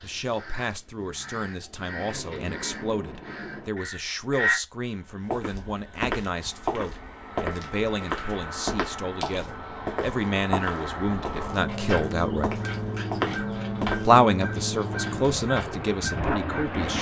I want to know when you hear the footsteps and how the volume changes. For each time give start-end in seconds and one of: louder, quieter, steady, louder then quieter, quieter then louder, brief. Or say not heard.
5.3-14.1 steady.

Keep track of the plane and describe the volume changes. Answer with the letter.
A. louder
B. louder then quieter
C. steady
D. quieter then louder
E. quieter
A.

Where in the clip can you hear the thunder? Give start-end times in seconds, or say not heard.
0.9-3.8.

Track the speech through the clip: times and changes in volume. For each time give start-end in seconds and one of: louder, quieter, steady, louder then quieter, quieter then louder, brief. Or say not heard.
0.0-12.5 louder
14.1-16.9 brief.